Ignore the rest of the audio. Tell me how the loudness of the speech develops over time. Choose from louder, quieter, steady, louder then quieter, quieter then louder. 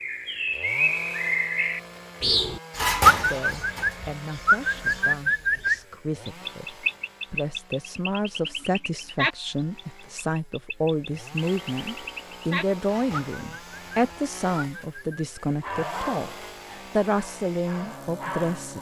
louder.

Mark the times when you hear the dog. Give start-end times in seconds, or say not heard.
15.6-18.7.